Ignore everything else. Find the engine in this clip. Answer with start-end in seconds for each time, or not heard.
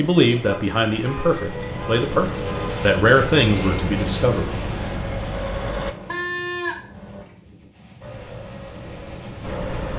0.0-6.0, 8.0-9.9.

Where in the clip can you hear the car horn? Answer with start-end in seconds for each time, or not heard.
0.5-2.8, 5.8-7.2.